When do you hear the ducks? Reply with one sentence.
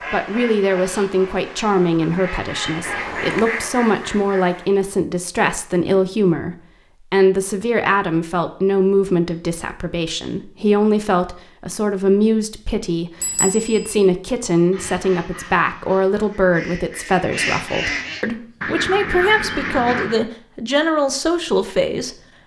You can hear the ducks from 0.0 to 4.7 s and from 14.7 to 20.2 s.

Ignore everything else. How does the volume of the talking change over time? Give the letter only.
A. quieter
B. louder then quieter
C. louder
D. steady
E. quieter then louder
D.